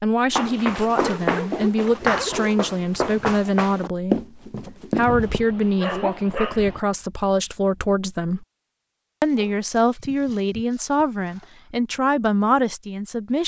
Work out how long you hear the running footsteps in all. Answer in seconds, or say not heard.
5 s.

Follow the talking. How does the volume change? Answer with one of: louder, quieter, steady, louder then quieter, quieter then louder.
steady.